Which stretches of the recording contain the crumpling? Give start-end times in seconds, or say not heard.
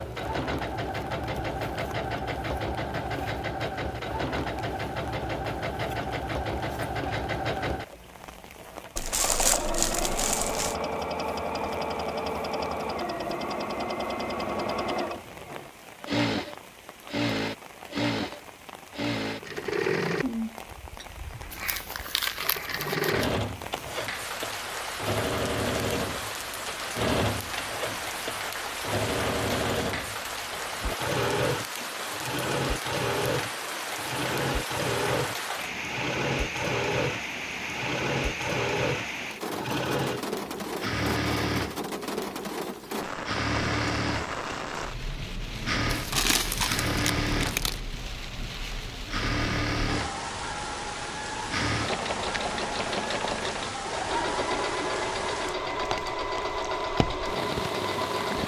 8.9-10.8, 21.5-23.3, 45.9-47.8.